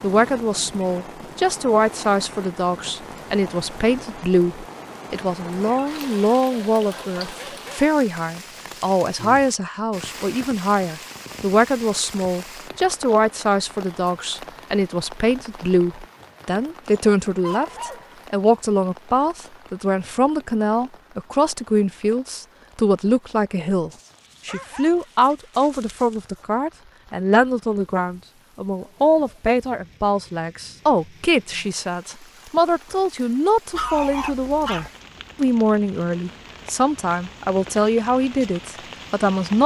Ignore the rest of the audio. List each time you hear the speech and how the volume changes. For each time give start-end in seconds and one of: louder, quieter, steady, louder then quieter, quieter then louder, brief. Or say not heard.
0.0-39.6 steady.